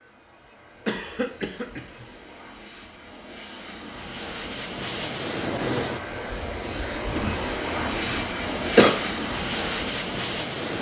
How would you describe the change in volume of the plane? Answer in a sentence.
The volume of the plane goes up.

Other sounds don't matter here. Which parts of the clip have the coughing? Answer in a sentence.
The coughing can be heard from 0.8 to 2.0 s and from 7.1 to 8.9 s.